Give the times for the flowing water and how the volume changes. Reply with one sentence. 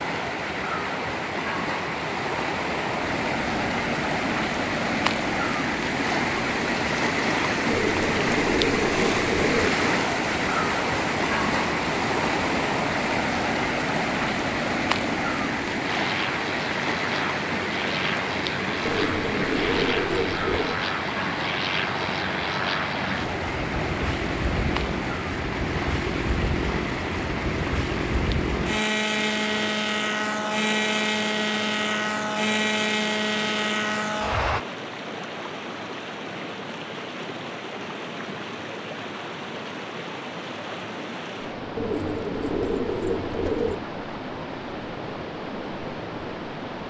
The flowing water can be heard from 0.0 to 46.8 s, getting quieter.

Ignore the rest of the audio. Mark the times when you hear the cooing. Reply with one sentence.
The cooing can be heard from 7.7 to 9.7 s, from 18.8 to 20.8 s and from 41.8 to 43.8 s.